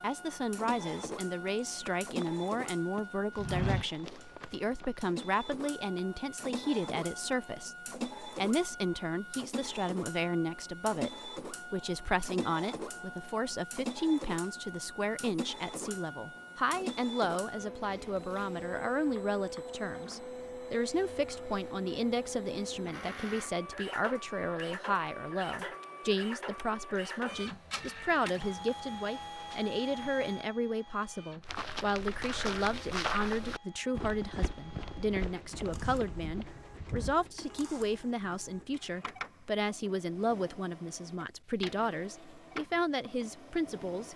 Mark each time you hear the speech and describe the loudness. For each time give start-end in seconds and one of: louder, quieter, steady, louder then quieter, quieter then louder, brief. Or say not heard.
0.0-44.1 steady.